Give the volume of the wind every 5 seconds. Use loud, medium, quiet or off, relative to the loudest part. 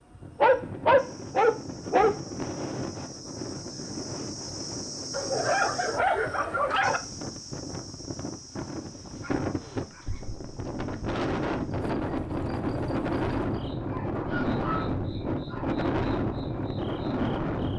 medium, medium, loud, loud.